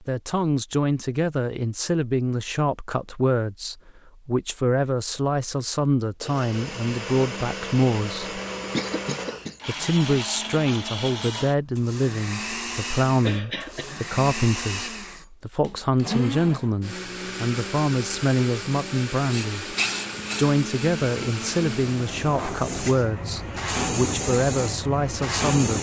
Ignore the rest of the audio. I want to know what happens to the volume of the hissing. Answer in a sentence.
The volume of the hissing goes down, then up.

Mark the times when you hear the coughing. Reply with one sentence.
The coughing can be heard from 8.6 to 9.6 s and from 13.2 to 13.8 s.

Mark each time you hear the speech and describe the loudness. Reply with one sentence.
You can hear the speech from 0.0 to 8.3 s, at a steady volume; from 9.7 to 19.8 s, at a steady volume; and from 20.4 to 25.7 s, at a steady volume.